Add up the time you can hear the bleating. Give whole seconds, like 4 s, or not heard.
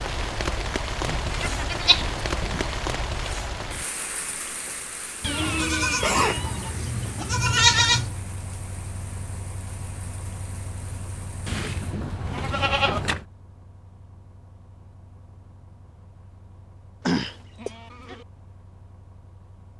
8 s.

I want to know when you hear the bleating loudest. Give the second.
8 s.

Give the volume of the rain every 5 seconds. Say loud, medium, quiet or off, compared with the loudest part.
loud, quiet, quiet, off.